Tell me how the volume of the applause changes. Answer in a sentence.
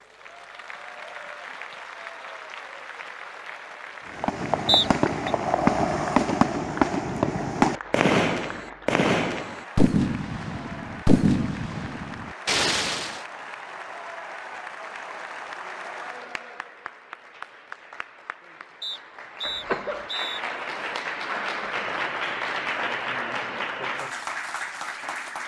The volume of the applause goes up.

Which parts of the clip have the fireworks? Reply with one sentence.
You can hear the fireworks from 4.1 to 13.2 s.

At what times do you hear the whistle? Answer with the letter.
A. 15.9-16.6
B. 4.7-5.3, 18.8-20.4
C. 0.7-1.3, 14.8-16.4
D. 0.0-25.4
B.